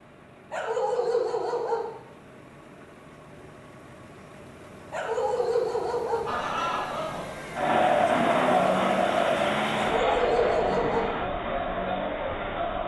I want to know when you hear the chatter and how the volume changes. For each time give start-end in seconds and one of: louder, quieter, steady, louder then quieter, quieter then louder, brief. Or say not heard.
6.2-12.8 louder then quieter.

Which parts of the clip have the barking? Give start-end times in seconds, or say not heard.
0.5-1.9, 4.9-6.2, 9.8-11.1.